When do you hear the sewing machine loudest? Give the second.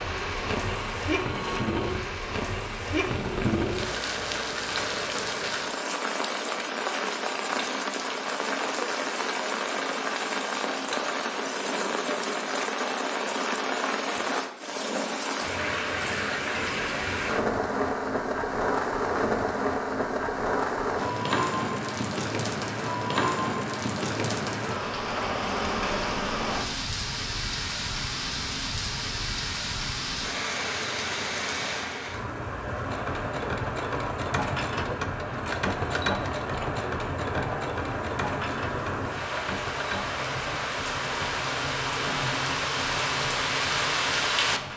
36 s.